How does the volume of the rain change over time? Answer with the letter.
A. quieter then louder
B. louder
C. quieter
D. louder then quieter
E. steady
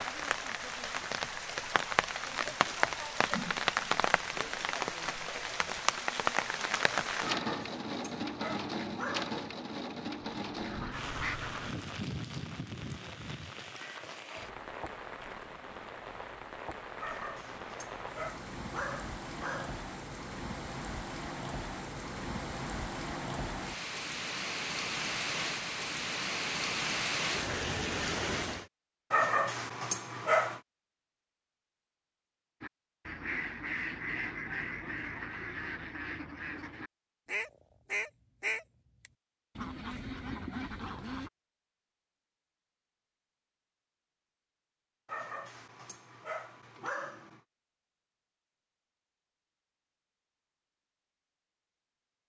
A.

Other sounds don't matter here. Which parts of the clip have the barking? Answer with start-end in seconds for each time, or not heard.
7.2-9.3, 16.9-19.9, 29.1-30.6, 45.0-47.4.